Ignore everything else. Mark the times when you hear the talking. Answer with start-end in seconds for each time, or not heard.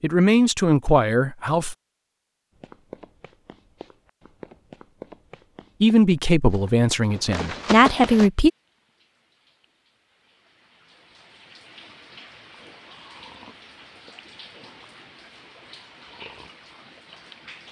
0.0-1.8, 5.8-8.5.